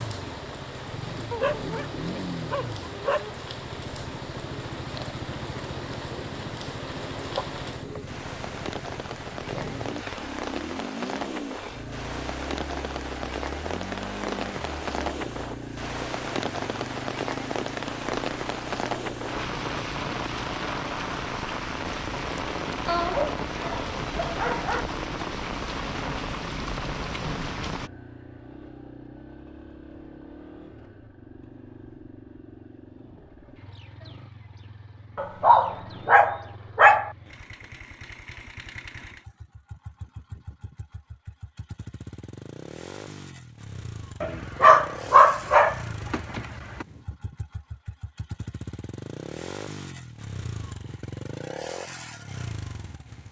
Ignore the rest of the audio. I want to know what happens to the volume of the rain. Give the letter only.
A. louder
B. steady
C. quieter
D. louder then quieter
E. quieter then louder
A.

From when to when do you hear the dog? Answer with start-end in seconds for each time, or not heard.
1.3-3.3, 22.9-24.9, 35.1-37.1, 44.2-46.9.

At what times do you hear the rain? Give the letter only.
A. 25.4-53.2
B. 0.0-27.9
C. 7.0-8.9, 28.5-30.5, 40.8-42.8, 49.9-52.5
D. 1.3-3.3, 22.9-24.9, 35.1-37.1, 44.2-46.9
B.